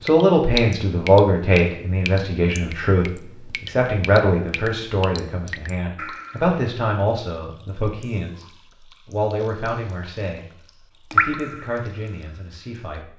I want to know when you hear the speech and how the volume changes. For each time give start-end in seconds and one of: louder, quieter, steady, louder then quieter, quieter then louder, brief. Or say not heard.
0.0-8.4 quieter
9.1-10.4 brief
11.1-13.1 brief.